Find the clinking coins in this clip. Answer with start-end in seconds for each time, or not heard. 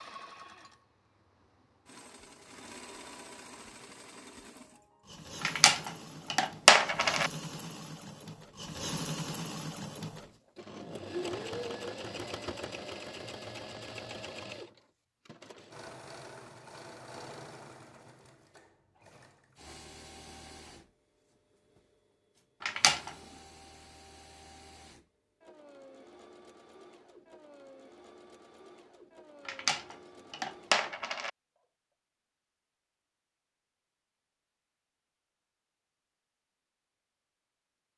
5.4-7.3, 22.6-23.1, 29.4-31.3.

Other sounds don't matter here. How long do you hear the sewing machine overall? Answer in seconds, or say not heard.
32 s.